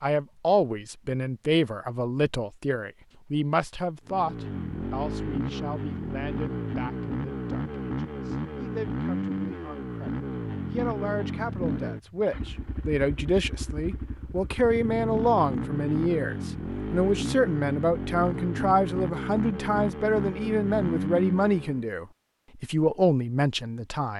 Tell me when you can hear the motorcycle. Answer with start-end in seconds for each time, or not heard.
4.0-21.9.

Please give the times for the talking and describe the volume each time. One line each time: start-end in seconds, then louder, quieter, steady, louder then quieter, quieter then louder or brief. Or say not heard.
0.0-24.1 quieter then louder.